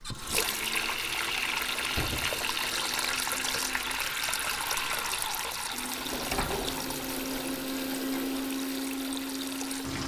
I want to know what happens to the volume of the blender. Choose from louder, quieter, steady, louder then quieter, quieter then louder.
louder.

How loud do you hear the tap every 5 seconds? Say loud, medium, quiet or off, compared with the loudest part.
loud, medium.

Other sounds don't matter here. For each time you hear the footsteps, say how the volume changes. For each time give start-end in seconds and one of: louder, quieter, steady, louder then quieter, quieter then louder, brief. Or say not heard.
not heard.